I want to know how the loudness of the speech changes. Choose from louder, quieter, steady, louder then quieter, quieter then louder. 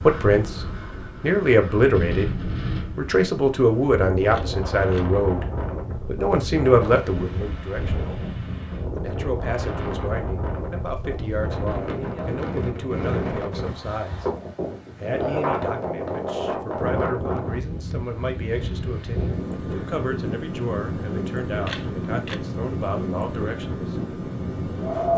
quieter.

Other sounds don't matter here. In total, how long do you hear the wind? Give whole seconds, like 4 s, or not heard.
25 s.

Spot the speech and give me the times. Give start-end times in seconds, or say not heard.
0.0-8.1, 8.9-14.2, 15.0-23.9.